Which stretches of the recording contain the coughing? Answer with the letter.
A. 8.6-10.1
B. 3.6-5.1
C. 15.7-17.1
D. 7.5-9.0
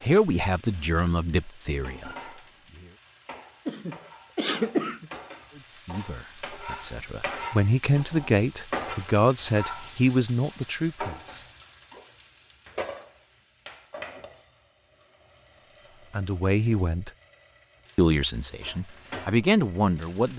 B.